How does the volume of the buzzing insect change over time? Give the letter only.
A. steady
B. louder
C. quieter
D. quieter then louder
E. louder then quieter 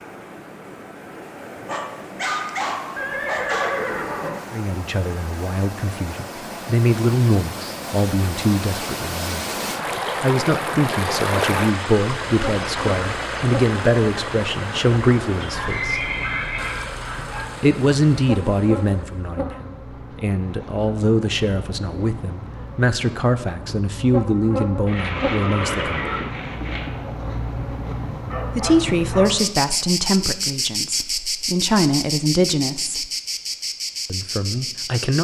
B.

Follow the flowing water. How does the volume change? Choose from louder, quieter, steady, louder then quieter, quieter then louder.
louder then quieter.